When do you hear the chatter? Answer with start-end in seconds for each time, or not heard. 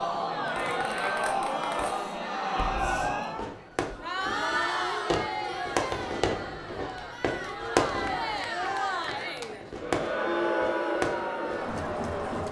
0.0-12.4.